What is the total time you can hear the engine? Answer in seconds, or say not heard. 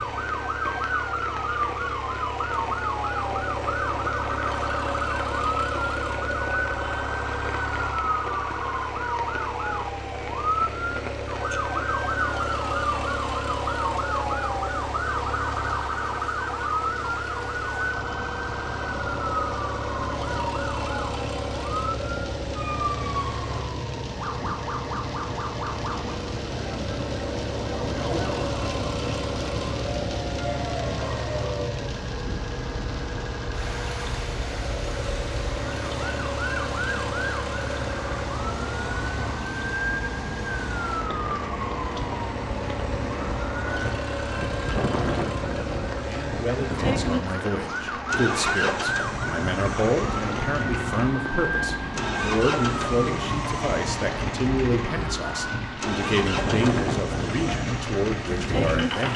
59 s.